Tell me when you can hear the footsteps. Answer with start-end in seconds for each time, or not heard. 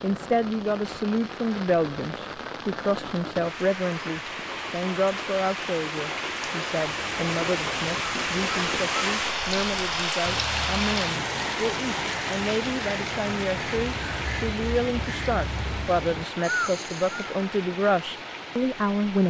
not heard.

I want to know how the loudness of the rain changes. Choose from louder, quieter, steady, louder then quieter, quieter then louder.
louder then quieter.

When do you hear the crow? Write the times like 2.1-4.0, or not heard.
6.8-17.3.